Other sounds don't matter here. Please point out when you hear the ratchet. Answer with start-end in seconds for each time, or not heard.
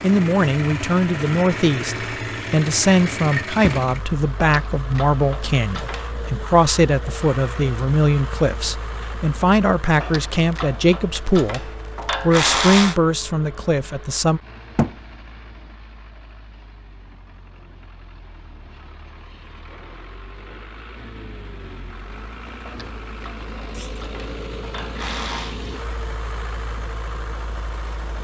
4.3-6.2, 10.0-12.9, 22.6-25.6.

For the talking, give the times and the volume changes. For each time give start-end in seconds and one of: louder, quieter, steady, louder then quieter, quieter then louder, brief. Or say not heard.
0.0-14.4 steady.